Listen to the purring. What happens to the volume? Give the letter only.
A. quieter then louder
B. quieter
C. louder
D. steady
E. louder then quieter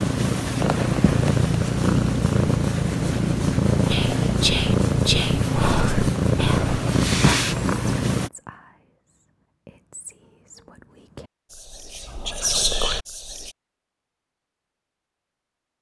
D.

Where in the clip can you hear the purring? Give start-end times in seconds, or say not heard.
0.0-8.3.